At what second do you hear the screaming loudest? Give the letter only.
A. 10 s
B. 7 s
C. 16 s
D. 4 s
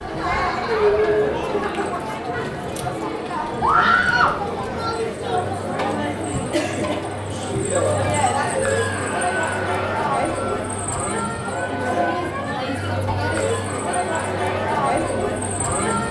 D.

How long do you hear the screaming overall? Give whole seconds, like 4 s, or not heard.
3 s.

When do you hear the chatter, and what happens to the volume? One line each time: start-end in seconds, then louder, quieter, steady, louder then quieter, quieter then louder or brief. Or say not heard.
0.0-16.0 steady.